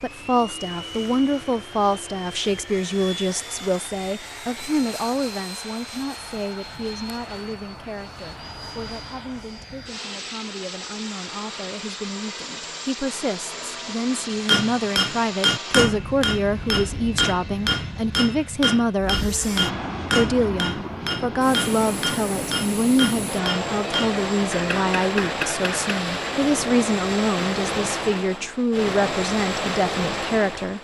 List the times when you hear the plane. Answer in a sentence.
The plane can be heard from 0.0 to 30.7 s.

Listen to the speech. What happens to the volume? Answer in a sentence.
The loudness of the speech goes down, then up.